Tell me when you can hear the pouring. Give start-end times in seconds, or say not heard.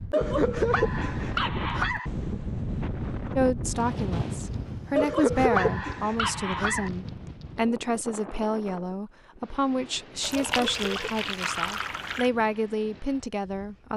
10.2-12.3.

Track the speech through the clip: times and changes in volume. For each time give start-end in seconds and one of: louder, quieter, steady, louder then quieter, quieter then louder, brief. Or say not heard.
3.4-13.9 steady.